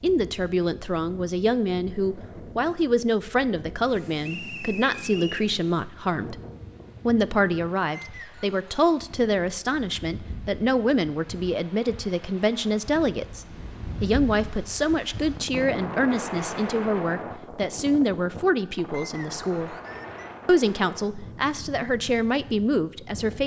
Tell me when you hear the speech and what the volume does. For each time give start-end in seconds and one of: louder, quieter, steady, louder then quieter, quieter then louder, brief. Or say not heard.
0.0-6.4 steady
7.0-19.8 steady
20.4-23.4 brief.